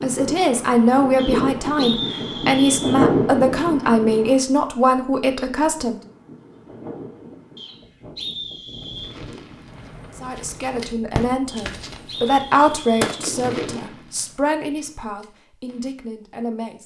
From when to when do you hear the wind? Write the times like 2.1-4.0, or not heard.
0.0-13.1.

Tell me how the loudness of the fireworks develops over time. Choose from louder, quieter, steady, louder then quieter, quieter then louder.
louder then quieter.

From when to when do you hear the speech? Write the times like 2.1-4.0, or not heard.
0.0-6.0, 10.2-16.8.